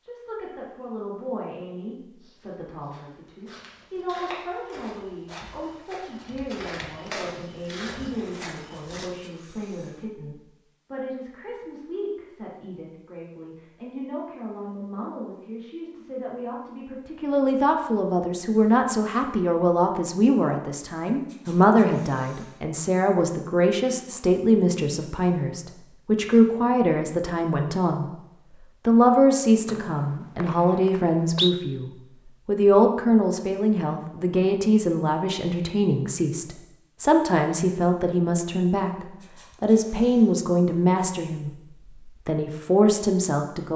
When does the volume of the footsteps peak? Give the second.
7 s.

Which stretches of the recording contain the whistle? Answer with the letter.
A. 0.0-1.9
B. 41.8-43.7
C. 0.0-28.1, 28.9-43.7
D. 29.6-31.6
D.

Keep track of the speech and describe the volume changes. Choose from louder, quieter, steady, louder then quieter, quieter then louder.
louder.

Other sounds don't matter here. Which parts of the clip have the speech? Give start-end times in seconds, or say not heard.
0.0-28.1, 28.9-43.7.